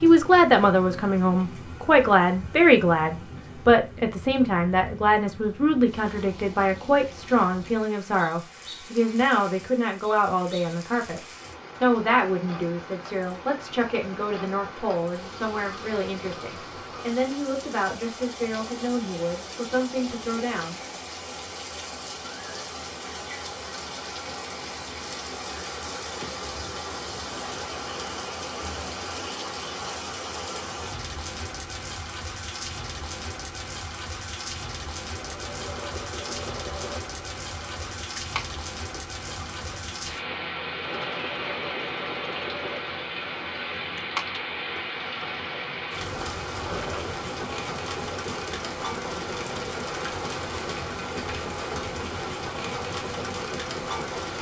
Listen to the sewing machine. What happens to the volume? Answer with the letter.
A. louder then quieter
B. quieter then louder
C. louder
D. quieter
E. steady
E.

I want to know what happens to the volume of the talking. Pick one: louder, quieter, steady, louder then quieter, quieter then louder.
quieter.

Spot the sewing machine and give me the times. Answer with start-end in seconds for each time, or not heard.
35.1-54.3.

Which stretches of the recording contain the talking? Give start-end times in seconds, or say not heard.
0.0-11.2, 11.8-21.3.